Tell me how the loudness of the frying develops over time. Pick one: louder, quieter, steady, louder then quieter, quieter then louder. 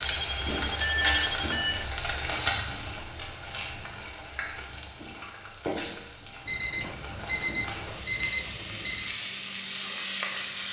quieter then louder.